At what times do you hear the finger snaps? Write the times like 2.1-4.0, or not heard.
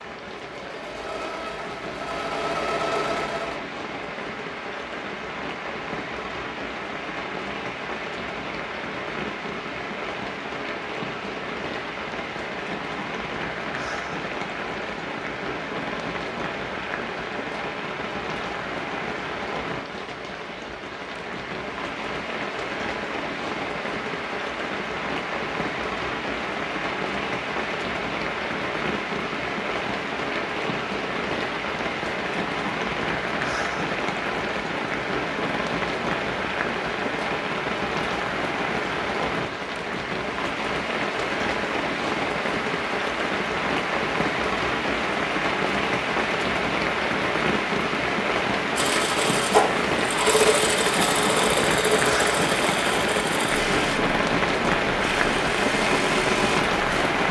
not heard.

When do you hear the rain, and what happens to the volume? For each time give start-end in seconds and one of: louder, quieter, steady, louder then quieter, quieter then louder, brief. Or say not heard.
0.0-57.2 louder.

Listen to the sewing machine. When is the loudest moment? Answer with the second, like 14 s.
50 s.